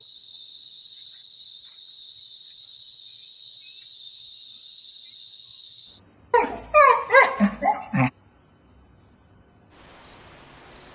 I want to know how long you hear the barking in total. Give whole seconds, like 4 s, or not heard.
2 s.